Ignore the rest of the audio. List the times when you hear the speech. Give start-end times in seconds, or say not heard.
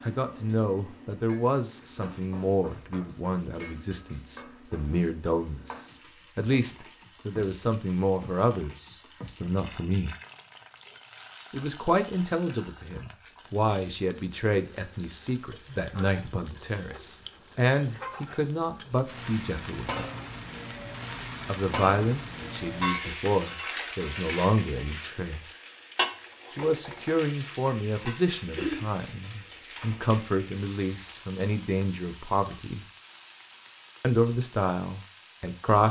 0.0-10.2, 11.5-20.1, 21.4-25.4, 26.5-32.9, 34.0-35.8.